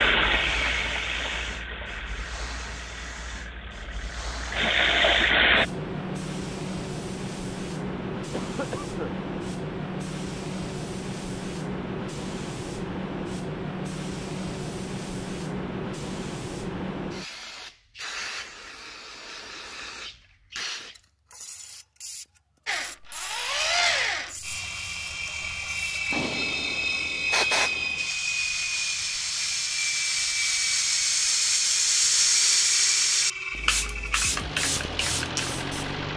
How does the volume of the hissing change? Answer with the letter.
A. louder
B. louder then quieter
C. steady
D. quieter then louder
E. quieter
A.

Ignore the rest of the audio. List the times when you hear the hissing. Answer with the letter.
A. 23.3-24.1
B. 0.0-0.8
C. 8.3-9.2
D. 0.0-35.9
D.